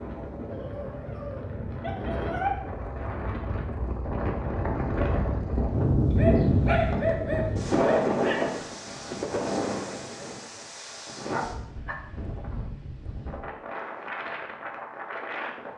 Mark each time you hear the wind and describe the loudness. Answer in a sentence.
You can hear the wind from 0.0 to 15.7 s, getting louder then quieter.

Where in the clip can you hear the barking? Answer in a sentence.
You can hear the barking from 0.5 to 2.5 s, from 6.2 to 8.7 s and from 11.3 to 11.9 s.